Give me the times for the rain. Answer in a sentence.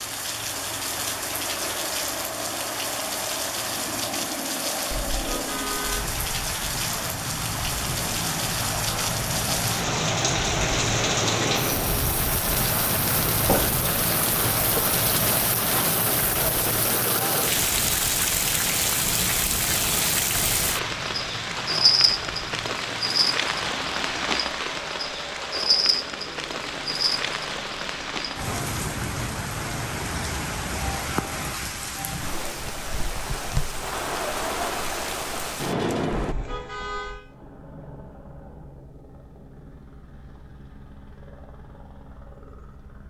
You can hear the rain from 0.0 to 36.4 s.